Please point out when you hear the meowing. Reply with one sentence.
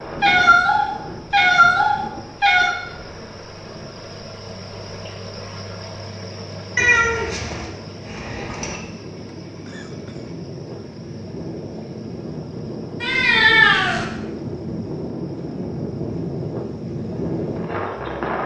You can hear the meowing from 0.2 to 2.7 s, from 6.8 to 8.8 s and from 13.0 to 14.1 s.